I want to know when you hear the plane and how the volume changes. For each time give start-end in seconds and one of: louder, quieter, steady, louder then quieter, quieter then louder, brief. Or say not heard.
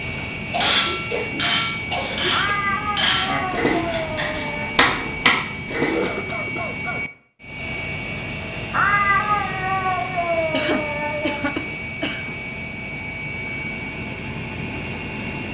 0.0-15.5 steady.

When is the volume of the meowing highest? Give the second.
9 s.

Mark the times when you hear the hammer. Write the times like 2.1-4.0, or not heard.
0.0-6.1.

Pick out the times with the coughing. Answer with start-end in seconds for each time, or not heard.
0.5-2.5, 5.9-7.0, 10.5-12.3.